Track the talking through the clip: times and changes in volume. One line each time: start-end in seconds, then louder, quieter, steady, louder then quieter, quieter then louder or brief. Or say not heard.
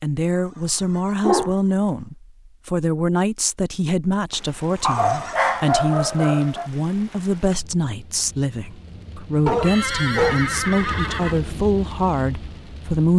0.0-13.1 steady.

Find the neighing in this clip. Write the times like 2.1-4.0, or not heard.
0.2-2.1, 4.8-5.4, 9.6-11.4.